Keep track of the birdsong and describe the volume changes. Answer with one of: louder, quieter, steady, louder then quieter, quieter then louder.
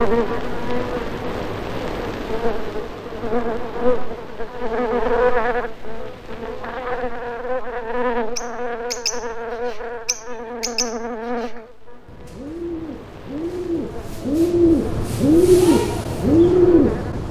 louder.